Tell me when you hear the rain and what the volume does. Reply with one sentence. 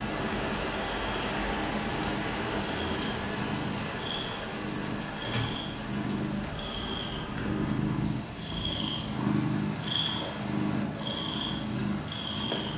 The rain can be heard from 0.0 to 12.7 s, getting quieter.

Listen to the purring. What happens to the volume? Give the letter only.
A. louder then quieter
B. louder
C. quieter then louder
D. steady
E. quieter
B.